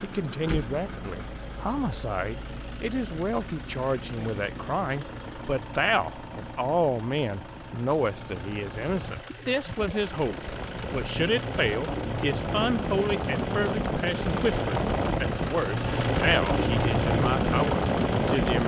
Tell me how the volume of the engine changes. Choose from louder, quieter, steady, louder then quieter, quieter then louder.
louder.